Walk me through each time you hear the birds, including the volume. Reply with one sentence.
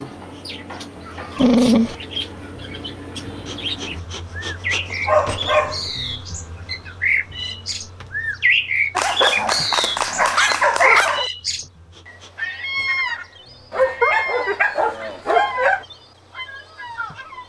You can hear the birds from 0.0 to 17.4 s, getting louder then quieter.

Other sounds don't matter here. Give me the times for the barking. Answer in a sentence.
You can hear the barking from 1.4 to 1.9 s, from 4.9 to 5.8 s, from 8.9 to 11.3 s and from 13.7 to 15.8 s.